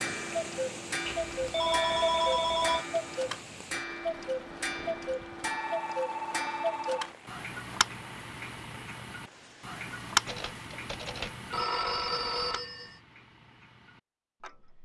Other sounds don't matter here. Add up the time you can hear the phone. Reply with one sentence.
You can hear the phone for 6 seconds altogether.